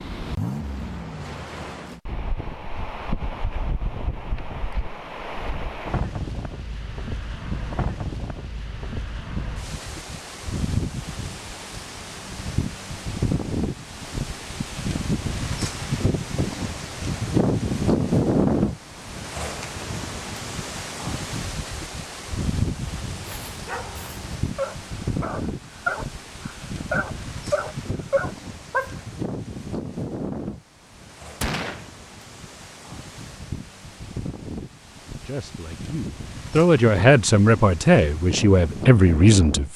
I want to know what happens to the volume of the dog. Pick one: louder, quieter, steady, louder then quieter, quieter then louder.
louder.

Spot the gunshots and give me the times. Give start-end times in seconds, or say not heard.
31.4-31.9.